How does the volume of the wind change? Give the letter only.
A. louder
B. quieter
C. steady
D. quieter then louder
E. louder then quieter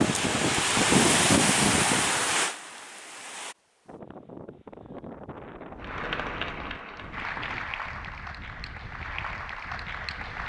B.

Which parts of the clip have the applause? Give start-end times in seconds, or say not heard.
5.8-10.4.